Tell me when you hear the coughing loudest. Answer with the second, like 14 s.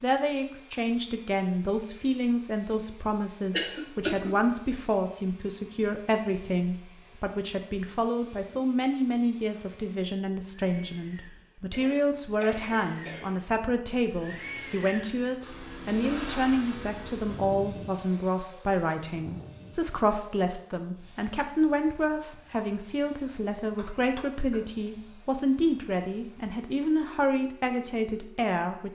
4 s.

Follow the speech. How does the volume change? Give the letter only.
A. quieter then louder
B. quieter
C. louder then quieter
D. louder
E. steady
E.